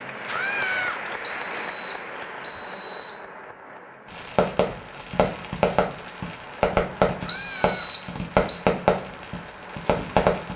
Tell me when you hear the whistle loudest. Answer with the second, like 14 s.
8 s.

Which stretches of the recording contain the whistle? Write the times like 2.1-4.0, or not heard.
1.2-3.2, 7.2-8.7.